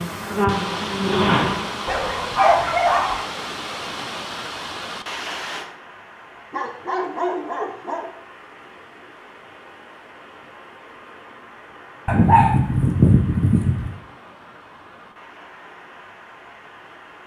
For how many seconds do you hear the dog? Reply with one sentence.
You can hear the dog for 5 seconds altogether.